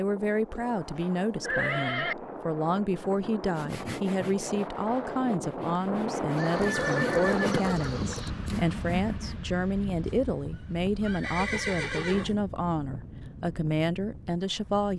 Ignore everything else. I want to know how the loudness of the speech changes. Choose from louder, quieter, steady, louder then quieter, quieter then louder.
steady.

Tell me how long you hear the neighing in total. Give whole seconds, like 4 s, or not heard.
5 s.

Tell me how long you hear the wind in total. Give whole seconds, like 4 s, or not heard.
15 s.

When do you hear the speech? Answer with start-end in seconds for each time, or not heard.
0.0-14.9.